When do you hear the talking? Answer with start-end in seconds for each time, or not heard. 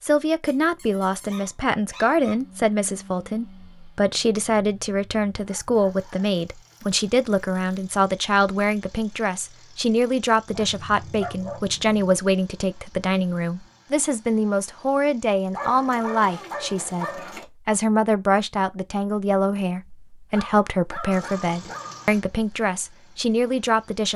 0.0-24.1.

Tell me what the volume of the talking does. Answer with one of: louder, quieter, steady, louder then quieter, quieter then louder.
steady.